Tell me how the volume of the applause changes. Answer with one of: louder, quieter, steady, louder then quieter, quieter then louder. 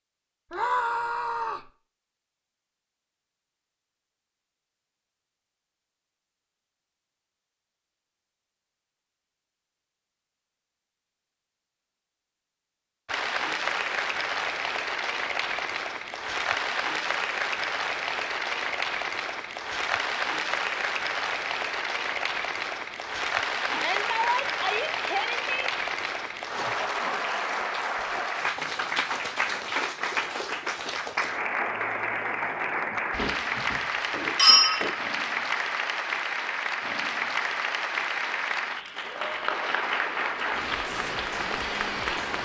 steady.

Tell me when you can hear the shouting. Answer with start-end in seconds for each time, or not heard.
0.5-1.7, 23.7-25.7.